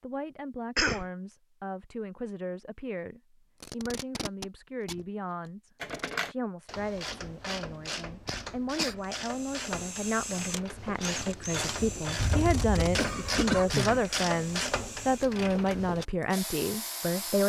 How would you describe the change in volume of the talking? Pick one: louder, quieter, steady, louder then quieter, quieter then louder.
louder.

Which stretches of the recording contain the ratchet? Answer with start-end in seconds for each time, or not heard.
5.8-16.1.